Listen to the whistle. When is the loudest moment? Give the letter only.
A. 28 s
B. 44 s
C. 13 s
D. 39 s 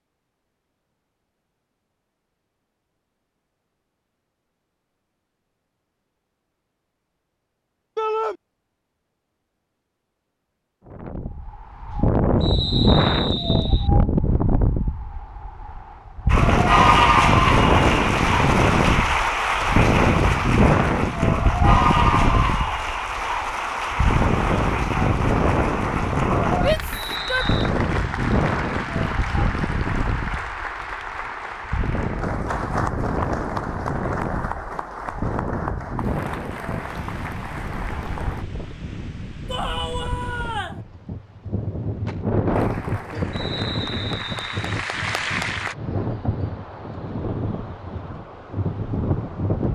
C.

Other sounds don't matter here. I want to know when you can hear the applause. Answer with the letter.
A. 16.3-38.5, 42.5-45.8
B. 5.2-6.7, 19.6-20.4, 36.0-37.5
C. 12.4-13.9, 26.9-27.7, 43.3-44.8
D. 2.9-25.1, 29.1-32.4
A.